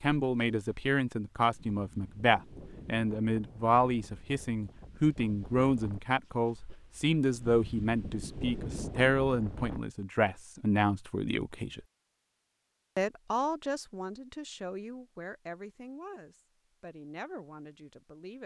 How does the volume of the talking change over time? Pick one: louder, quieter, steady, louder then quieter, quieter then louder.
quieter.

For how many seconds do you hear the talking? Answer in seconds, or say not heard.
17 s.